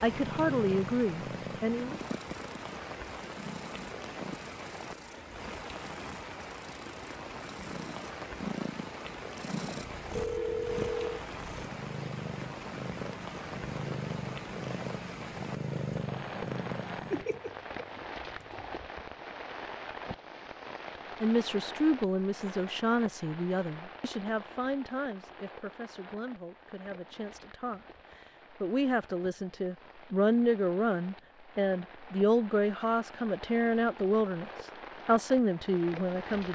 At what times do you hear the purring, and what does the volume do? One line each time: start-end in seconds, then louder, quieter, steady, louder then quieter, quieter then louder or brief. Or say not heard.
0.0-18.8 quieter then louder.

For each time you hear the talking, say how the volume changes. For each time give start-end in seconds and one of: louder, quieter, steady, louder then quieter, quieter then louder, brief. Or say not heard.
0.0-2.0 brief
21.2-36.5 quieter then louder.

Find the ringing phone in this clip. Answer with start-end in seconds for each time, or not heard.
10.2-11.2.